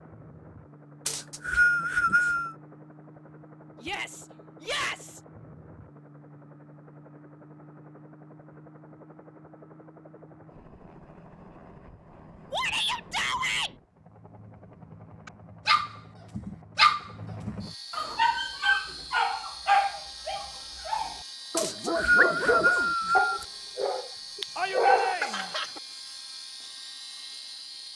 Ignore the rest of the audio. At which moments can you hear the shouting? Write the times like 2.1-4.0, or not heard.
3.8-5.2, 12.5-13.7, 24.6-25.5.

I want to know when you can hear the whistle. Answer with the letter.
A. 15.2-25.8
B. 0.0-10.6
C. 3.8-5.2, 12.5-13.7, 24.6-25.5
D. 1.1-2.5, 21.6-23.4
D.